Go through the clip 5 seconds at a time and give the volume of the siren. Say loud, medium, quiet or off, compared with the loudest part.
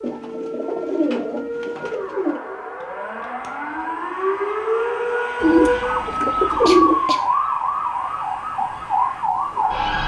medium, loud.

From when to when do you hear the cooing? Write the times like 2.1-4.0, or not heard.
0.0-2.4, 5.4-7.0.